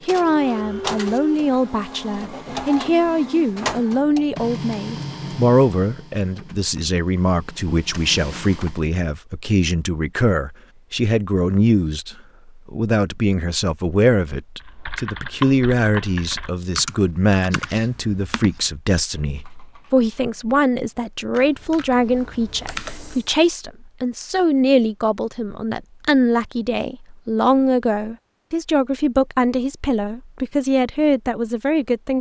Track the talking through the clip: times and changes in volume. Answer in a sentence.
You can hear the talking from 0.1 to 32.1 s, at a steady volume.